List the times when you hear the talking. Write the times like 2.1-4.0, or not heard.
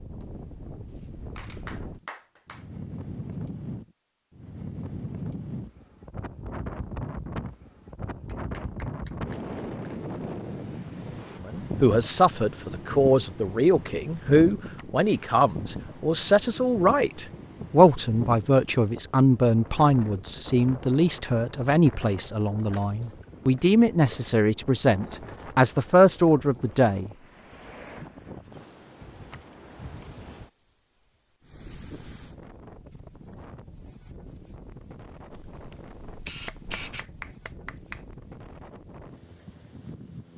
11.4-27.1.